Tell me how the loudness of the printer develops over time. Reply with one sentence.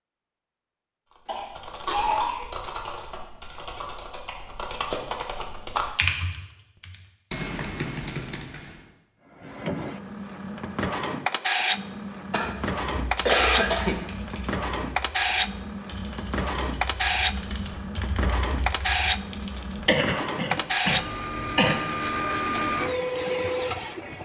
The loudness of the printer stays about the same.